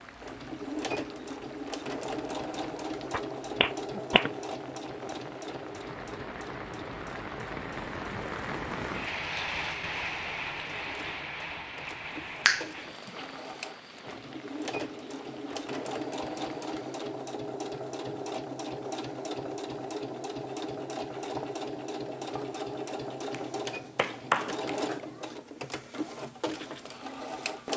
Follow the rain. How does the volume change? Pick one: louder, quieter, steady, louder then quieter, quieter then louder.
louder then quieter.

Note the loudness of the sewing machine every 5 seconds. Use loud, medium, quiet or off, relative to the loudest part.
loud, medium, medium, loud, loud, loud.